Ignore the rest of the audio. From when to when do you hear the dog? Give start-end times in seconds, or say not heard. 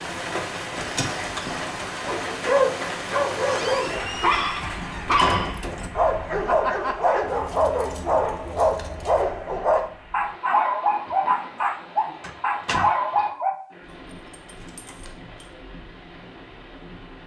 2.0-13.6.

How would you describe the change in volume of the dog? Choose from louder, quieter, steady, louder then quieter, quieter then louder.
steady.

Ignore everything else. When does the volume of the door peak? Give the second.
5 s.